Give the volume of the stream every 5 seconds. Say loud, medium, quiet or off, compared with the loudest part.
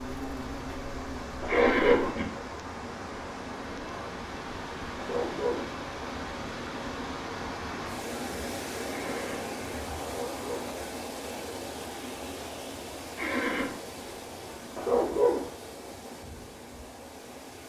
loud, loud, loud, medium.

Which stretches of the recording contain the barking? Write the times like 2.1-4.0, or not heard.
1.4-2.1, 5.0-5.7, 10.2-10.8, 14.8-15.5.